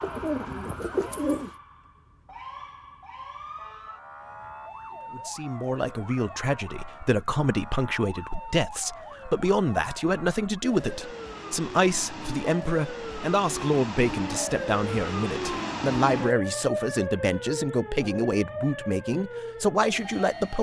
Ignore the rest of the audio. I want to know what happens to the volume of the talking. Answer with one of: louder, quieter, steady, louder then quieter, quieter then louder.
steady.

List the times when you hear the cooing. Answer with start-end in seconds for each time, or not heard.
0.0-1.6.